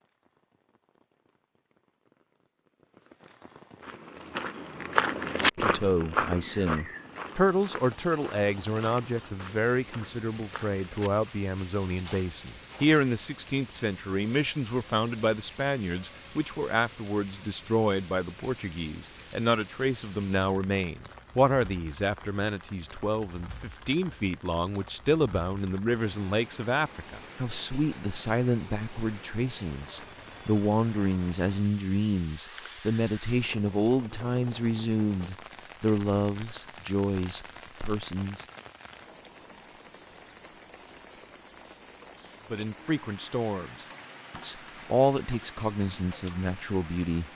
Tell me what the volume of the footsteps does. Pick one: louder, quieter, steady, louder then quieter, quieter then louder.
quieter.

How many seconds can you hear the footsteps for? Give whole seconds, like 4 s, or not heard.
9 s.